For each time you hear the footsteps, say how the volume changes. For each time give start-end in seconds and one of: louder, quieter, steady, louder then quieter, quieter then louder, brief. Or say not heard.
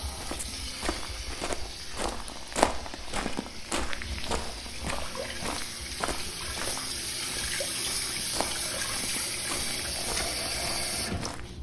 0.0-11.5 louder then quieter.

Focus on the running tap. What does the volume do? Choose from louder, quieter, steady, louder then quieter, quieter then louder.
louder.